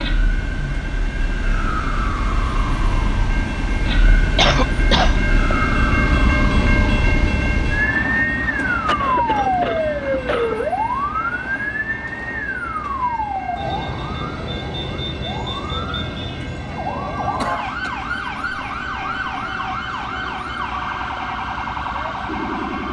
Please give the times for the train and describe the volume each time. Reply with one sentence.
You can hear the train from 0.0 to 22.8 s, getting louder then quieter.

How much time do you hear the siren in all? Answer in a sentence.
The siren can be heard for 23 seconds in total.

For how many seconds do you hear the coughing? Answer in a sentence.
The coughing can be heard for 3 seconds in total.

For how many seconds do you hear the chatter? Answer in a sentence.
You can't hear the chatter here.